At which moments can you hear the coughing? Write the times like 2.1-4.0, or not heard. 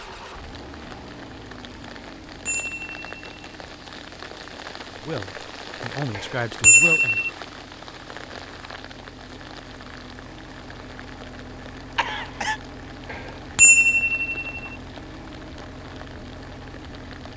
11.9-12.6.